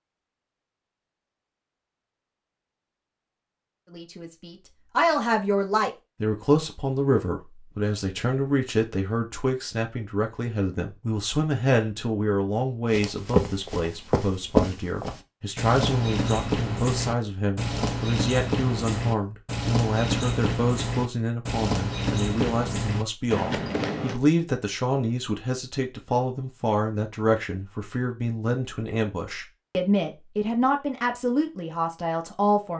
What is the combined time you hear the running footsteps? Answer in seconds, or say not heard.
11 s.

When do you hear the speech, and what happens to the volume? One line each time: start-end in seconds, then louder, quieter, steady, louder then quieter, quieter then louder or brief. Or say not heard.
3.9-32.7 steady.